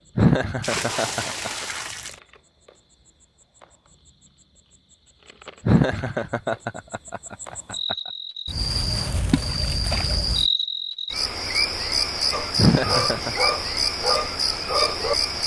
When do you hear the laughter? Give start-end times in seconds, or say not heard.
0.1-1.5, 5.7-8.0, 12.6-13.3.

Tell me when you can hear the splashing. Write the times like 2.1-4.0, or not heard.
0.6-2.2, 9.2-10.2.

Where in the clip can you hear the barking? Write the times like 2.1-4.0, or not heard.
12.2-15.3.